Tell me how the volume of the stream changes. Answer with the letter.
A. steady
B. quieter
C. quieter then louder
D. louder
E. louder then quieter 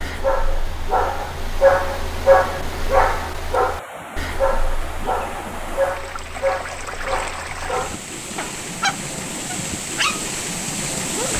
D.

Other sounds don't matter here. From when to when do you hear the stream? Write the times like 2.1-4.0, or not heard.
0.0-11.3.